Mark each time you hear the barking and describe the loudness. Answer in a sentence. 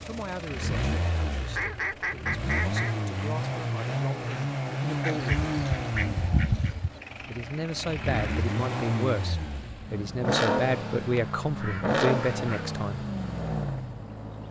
The barking can't be heard in this clip.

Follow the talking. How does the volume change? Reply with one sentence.
The loudness of the talking goes up.